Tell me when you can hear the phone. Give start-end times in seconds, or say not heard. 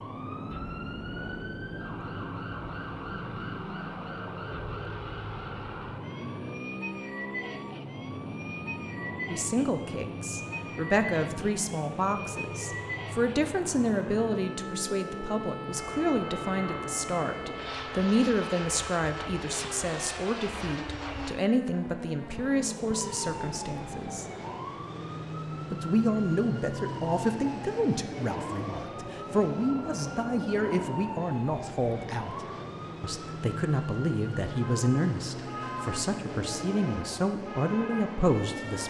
not heard.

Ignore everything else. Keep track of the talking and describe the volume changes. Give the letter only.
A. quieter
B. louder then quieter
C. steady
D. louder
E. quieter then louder
C.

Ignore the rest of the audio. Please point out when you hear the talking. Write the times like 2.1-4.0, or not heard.
9.3-24.2, 25.6-32.4, 33.0-38.8.